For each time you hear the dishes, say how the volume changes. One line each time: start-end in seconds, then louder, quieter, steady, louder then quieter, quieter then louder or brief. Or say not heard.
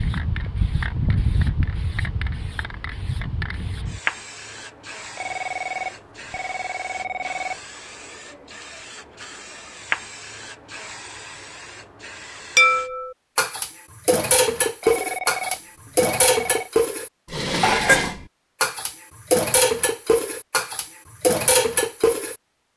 12.6-22.4 steady.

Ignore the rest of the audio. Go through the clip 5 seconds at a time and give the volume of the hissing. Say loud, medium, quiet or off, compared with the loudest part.
loud, medium, medium, off, off.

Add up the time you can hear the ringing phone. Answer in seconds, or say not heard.
4 s.